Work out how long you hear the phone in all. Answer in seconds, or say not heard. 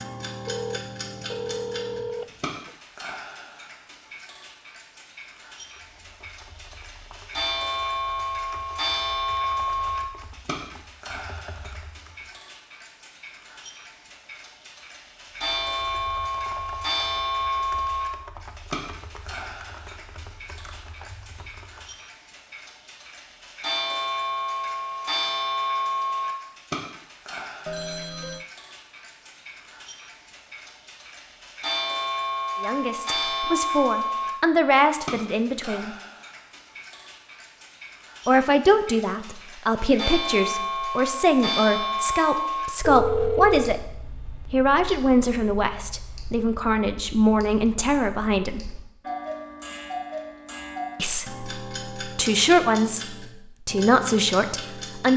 4 s.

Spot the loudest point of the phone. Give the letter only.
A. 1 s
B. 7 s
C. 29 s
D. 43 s
D.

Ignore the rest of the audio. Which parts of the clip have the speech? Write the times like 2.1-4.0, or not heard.
32.6-35.9, 38.2-48.7, 51.0-55.1.